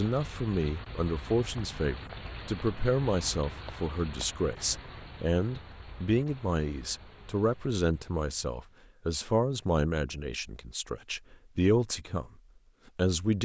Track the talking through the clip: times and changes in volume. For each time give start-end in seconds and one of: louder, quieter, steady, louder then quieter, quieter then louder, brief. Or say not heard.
0.0-12.3 steady
12.9-13.4 brief.